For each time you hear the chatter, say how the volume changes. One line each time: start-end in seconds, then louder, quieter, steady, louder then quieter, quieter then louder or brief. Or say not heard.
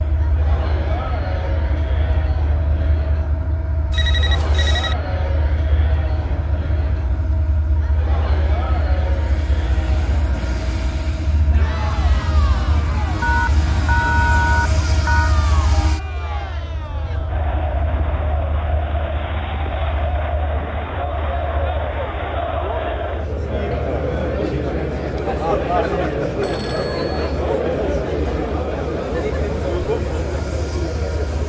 0.0-31.4 louder.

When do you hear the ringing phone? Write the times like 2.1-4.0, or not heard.
3.9-5.0, 13.2-15.3, 26.4-27.4.